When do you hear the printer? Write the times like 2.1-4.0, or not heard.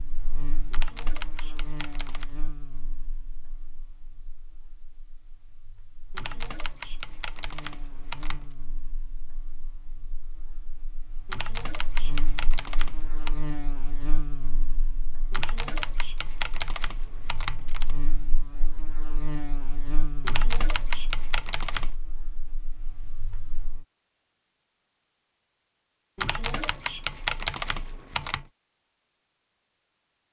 not heard.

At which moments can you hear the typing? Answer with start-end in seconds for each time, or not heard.
0.7-2.3, 6.1-8.6, 11.2-13.4, 15.3-17.9, 20.2-21.9, 26.1-28.5.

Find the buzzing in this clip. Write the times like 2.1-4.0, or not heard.
0.0-23.9.